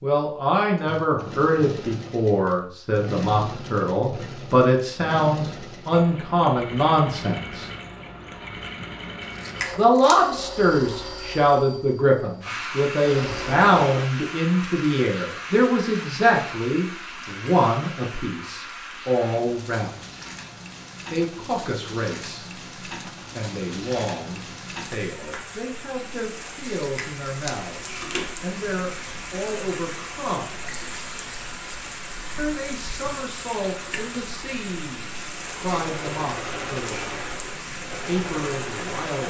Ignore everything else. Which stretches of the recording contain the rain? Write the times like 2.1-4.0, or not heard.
12.4-39.2.